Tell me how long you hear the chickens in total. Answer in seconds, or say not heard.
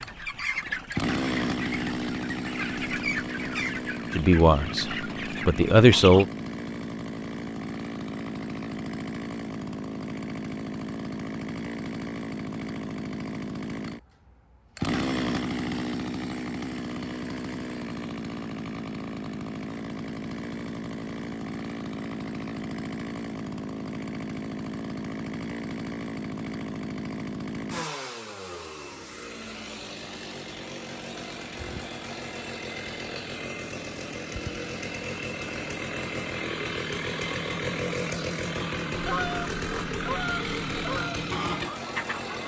10 s.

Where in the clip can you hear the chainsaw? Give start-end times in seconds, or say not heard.
0.0-42.4.